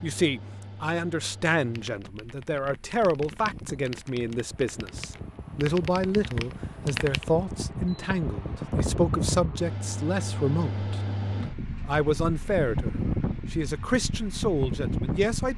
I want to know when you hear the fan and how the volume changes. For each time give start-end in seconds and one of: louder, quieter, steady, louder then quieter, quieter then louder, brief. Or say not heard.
0.0-15.5 louder.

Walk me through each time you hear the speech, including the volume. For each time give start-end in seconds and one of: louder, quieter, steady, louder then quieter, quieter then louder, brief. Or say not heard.
0.0-15.5 steady.